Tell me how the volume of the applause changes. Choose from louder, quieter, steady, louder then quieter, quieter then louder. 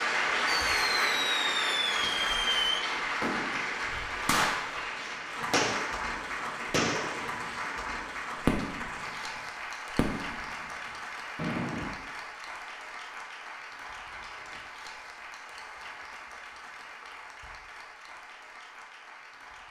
quieter.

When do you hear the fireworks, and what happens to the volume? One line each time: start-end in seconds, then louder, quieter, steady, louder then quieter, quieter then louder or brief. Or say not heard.
0.5-9.2 steady
9.9-10.8 brief
11.3-11.9 brief.